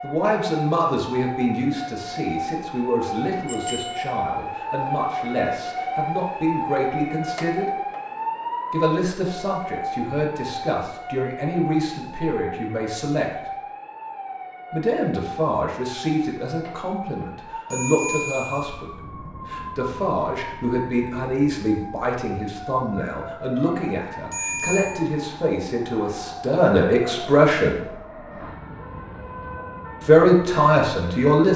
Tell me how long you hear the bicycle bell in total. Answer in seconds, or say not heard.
2 s.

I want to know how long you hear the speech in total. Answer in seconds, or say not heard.
27 s.